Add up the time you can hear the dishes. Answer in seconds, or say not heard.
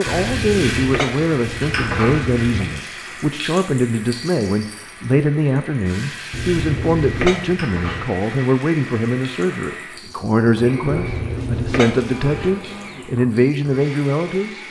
6 s.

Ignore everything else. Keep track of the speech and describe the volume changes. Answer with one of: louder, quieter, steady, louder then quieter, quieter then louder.
steady.